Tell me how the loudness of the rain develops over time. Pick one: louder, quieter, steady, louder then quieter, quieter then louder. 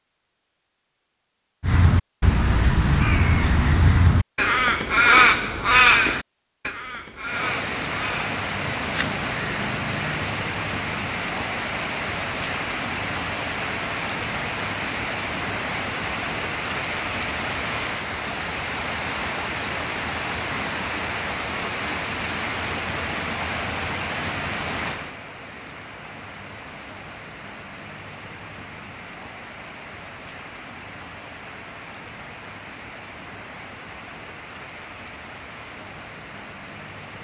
quieter.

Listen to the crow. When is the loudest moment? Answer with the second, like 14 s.
5 s.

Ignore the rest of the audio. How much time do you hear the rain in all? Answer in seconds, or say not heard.
30 s.